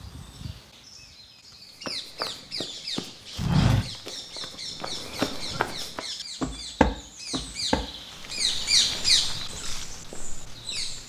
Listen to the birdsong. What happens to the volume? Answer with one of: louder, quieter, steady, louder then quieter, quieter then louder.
louder.